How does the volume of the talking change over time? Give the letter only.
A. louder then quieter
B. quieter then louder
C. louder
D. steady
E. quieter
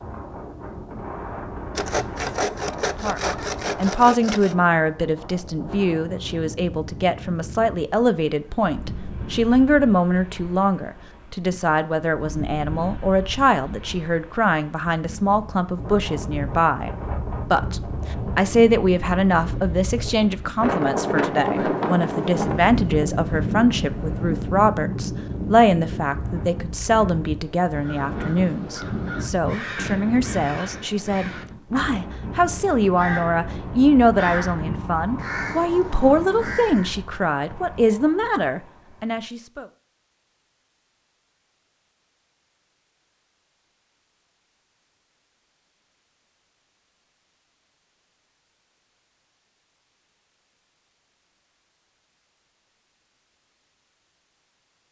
D.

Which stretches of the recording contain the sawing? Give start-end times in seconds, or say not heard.
1.8-4.5.